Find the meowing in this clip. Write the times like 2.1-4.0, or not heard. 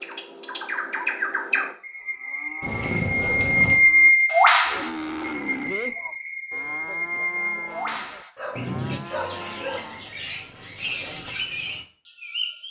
2.6-3.9.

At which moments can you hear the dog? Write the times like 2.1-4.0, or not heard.
8.3-9.8.